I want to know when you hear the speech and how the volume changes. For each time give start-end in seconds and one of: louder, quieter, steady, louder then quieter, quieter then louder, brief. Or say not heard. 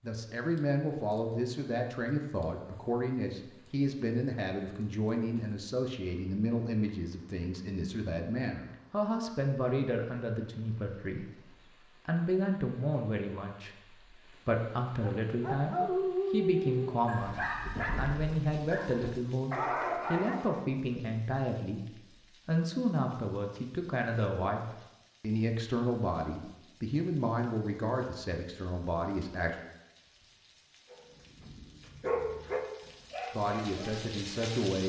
0.0-29.6 steady
33.3-34.8 brief.